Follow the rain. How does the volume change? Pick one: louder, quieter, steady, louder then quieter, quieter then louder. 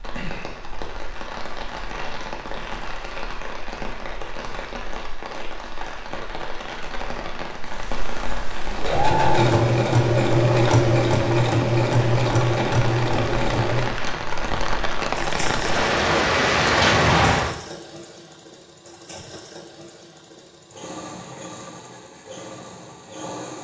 louder.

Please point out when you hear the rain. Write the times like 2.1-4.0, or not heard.
0.0-17.6.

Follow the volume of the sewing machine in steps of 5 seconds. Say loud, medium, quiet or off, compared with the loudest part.
off, loud, loud, quiet, quiet.